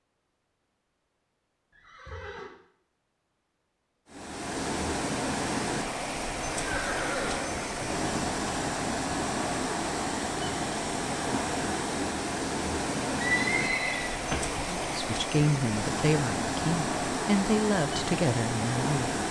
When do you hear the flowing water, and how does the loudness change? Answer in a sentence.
You can hear the flowing water from 4.0 to 19.2 s, at a steady volume.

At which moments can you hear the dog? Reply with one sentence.
You can't hear the dog here.